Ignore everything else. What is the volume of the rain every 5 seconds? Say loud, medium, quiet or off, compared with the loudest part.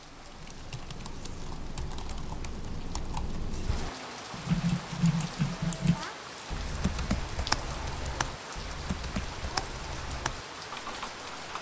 medium, loud, loud.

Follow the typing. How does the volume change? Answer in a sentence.
The loudness of the typing goes up, then down.